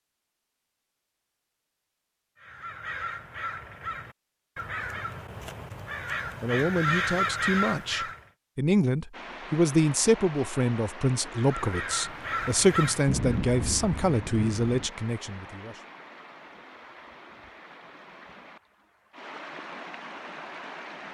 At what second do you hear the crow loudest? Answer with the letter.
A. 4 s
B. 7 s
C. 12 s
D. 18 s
B.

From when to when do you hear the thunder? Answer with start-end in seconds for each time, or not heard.
13.1-14.9.